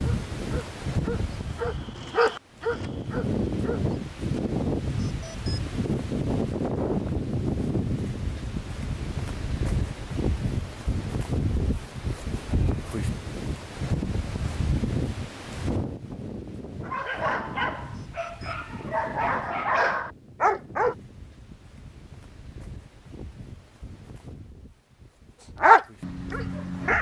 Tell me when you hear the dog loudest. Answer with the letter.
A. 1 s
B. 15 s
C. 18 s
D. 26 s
D.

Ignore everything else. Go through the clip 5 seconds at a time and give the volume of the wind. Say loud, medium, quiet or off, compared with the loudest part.
loud, loud, loud, medium, quiet, quiet.